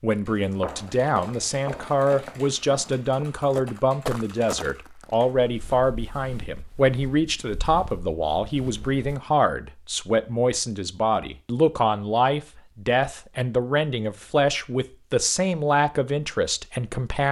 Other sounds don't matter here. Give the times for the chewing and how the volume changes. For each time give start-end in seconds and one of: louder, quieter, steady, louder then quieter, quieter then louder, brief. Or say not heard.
not heard.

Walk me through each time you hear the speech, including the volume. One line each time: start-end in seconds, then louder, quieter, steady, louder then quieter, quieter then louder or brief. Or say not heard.
0.0-17.2 steady.